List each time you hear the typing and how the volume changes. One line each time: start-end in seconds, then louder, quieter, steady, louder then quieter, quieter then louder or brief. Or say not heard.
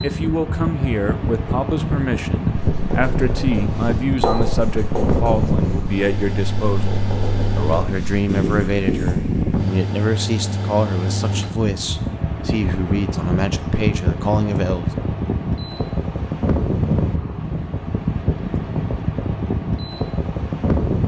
not heard.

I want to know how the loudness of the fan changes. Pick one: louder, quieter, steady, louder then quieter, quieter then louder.
steady.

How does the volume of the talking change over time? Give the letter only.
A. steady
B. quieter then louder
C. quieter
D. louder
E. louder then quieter
A.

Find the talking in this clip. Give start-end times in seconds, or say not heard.
0.0-14.9.